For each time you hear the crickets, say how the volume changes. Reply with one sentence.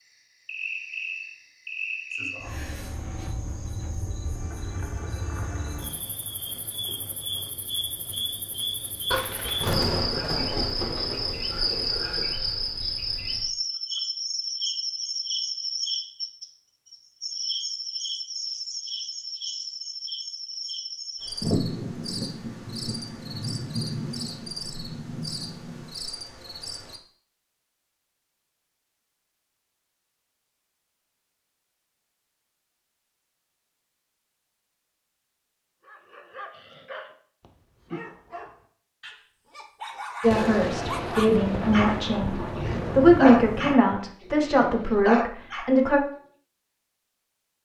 You can hear the crickets from 0.0 to 27.0 s, getting louder then quieter.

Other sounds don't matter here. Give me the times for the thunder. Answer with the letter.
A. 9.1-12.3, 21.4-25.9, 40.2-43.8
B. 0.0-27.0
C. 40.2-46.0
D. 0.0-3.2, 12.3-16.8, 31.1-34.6
A.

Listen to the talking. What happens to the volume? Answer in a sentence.
The loudness of the talking goes up, then down.